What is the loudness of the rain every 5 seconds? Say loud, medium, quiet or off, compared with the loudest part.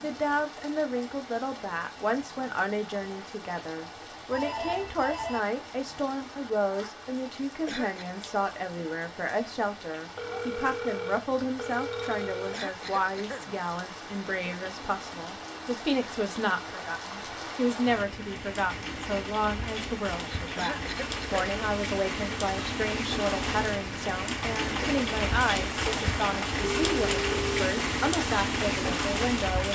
quiet, quiet, quiet, medium, loud, loud.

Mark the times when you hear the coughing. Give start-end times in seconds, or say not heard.
7.7-8.2, 12.5-13.7, 20.6-21.4.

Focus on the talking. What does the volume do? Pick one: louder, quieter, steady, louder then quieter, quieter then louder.
steady.